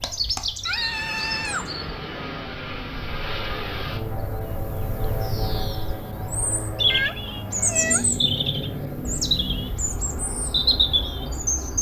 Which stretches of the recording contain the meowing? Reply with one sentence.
The meowing can be heard from 0.7 to 1.7 s and from 6.9 to 8.1 s.